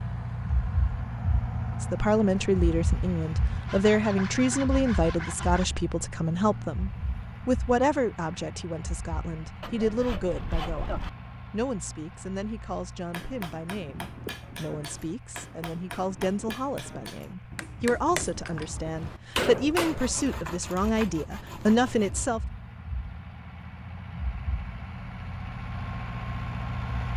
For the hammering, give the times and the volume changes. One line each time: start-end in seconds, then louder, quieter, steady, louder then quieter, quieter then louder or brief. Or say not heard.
13.1-20.5 louder.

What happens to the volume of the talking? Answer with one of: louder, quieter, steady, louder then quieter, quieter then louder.
quieter then louder.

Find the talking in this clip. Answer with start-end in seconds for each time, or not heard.
1.8-22.4.